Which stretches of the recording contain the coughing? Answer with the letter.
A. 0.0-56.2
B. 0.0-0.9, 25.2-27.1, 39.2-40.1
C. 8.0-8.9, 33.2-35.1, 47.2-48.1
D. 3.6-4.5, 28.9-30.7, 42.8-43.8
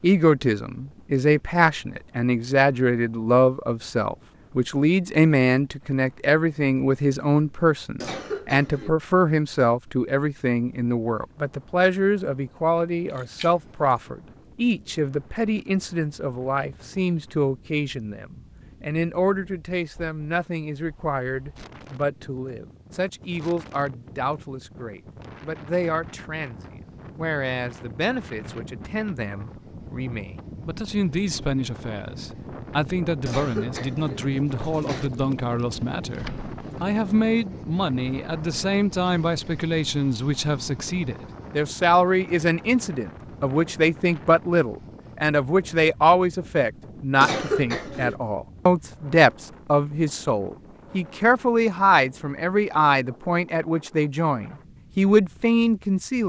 C.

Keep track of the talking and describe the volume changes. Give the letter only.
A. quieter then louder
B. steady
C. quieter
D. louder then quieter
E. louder
A.